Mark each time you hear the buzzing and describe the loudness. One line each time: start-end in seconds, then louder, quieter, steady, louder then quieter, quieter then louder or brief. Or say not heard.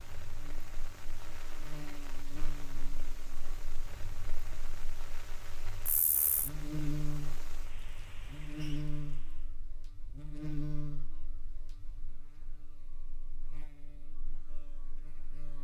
0.2-15.5 louder then quieter.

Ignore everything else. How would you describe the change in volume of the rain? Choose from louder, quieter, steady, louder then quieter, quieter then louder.
steady.